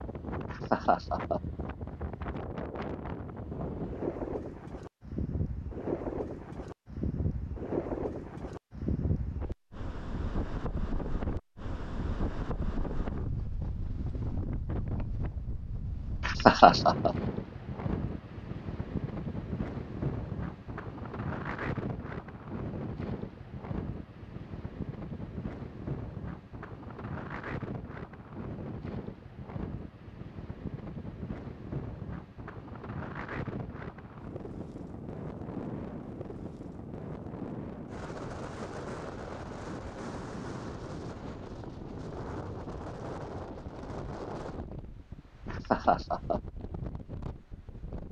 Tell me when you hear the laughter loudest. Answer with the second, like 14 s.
17 s.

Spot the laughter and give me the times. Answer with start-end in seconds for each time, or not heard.
0.5-1.4, 16.2-17.1, 45.5-46.4.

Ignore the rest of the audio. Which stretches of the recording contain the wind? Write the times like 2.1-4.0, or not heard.
0.0-48.0.